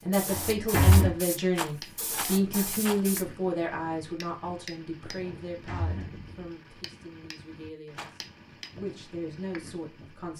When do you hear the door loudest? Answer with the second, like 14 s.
1 s.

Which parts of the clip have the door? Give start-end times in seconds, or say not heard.
0.3-1.1, 5.2-6.3.